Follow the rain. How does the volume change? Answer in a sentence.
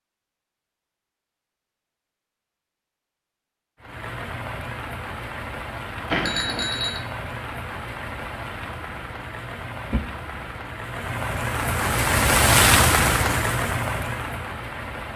The loudness of the rain goes up.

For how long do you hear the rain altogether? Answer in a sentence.
You can hear the rain for 11 seconds altogether.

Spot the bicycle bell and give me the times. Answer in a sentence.
The bicycle bell can be heard from 6.1 to 7.0 s.